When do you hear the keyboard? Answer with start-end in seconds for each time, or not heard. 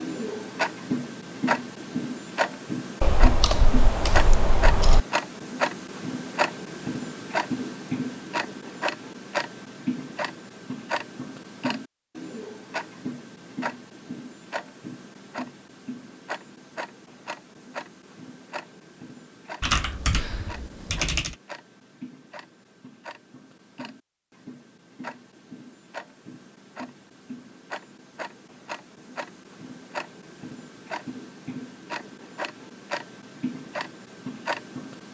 3.0-5.0, 19.6-21.4.